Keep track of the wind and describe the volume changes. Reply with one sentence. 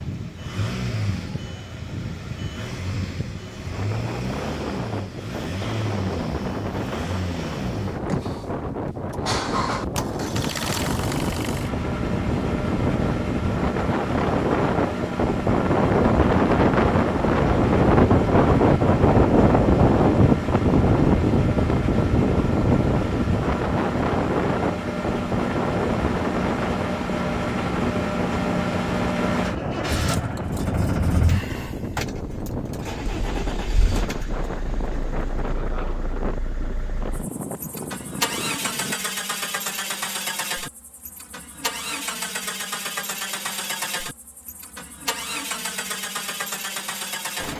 The volume of the wind goes up, then down.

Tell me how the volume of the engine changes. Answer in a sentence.
The volume of the engine stays about the same.